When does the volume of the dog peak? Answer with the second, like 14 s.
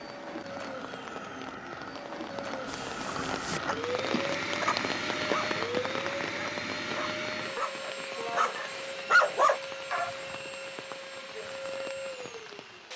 9 s.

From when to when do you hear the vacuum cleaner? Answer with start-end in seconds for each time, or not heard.
0.0-12.9.